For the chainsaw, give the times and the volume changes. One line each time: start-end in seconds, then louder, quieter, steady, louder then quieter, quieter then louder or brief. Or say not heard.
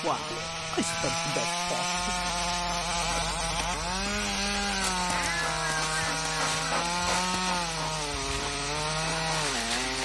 0.0-10.0 steady.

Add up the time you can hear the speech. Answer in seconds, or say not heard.
2 s.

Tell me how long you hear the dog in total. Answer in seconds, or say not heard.
8 s.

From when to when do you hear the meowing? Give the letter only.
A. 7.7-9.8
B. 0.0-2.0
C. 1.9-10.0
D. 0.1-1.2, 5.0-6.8
D.